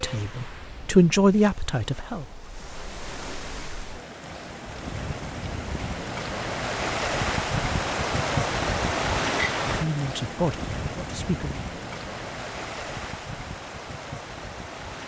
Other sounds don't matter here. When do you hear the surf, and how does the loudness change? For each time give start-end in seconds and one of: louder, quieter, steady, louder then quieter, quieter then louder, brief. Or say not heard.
0.0-15.0 louder then quieter.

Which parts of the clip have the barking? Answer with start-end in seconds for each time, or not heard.
not heard.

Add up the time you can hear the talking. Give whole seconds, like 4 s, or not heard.
4 s.